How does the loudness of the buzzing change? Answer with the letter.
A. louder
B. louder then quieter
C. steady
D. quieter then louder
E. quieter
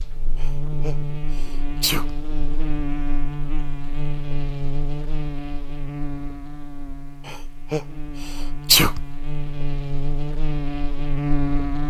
D.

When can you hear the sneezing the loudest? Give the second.
9 s.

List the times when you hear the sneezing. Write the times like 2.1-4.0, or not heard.
0.4-2.1, 7.2-9.1.